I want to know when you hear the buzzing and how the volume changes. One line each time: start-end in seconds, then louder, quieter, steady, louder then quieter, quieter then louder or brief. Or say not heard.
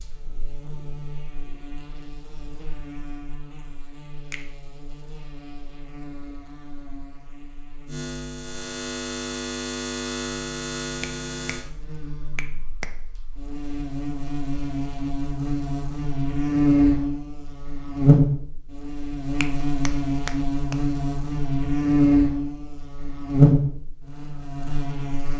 0.0-25.3 louder.